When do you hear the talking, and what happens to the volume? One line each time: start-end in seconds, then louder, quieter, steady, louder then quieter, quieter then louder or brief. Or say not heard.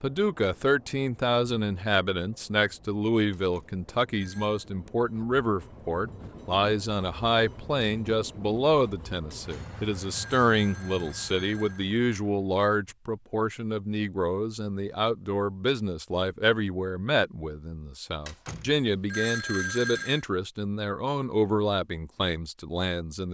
0.0-23.2 steady.